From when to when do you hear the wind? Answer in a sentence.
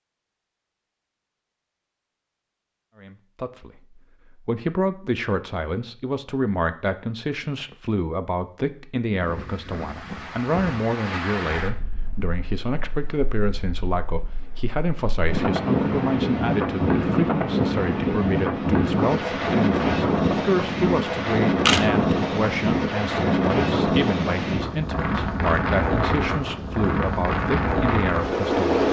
You can hear the wind from 9.2 to 28.8 s.